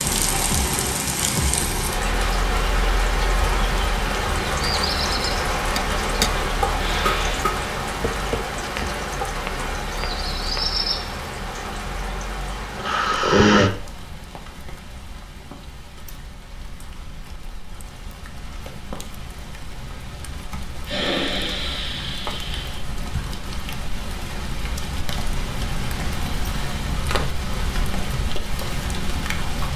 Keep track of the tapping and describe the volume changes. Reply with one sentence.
The volume of the tapping goes down.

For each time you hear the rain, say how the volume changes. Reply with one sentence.
The rain can be heard from 0.0 to 29.7 s, getting quieter then louder.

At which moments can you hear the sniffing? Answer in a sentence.
The sniffing can be heard from 6.8 to 7.5 s, from 12.8 to 13.7 s and from 20.9 to 22.8 s.